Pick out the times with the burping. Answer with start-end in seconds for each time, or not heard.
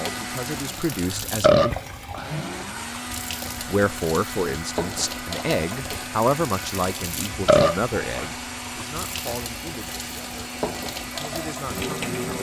1.4-2.2, 7.5-8.3.